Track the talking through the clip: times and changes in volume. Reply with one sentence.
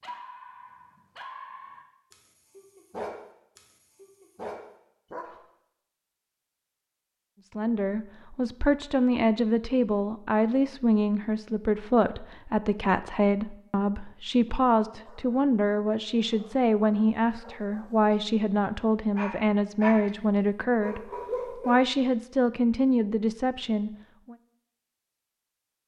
You can hear the talking from 7.5 to 24.4 s, at a steady volume.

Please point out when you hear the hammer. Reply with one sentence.
You can't hear the hammer here.